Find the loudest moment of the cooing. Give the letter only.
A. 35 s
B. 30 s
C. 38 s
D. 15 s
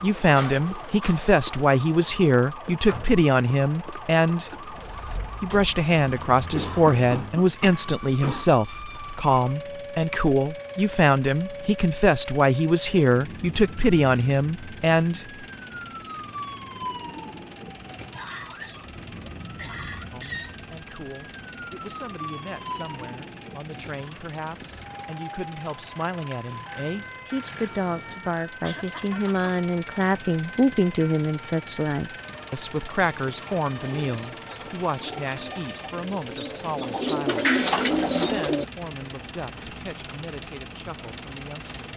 C.